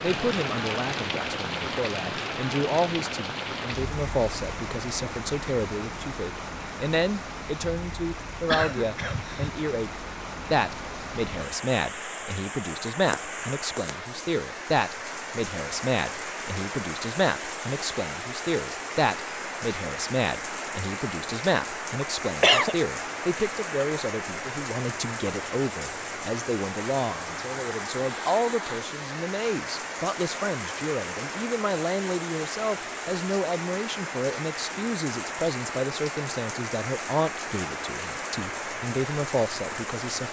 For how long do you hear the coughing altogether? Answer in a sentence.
You can hear the coughing for 2 seconds altogether.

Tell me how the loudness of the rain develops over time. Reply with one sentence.
The loudness of the rain stays about the same.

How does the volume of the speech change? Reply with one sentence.
The loudness of the speech stays about the same.